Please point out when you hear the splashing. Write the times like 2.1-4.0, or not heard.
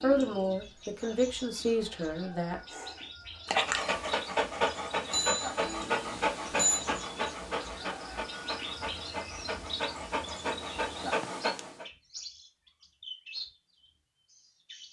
not heard.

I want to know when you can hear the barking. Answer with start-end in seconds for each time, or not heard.
2.7-11.8.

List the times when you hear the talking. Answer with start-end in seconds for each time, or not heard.
0.0-2.6.